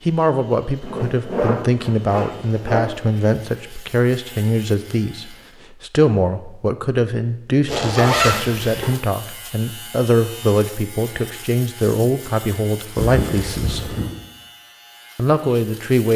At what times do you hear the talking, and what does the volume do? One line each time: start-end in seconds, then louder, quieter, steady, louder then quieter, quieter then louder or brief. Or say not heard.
0.1-13.9 steady
15.2-16.1 brief.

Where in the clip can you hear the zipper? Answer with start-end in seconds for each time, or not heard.
0.8-2.8, 7.7-8.9, 12.9-14.1.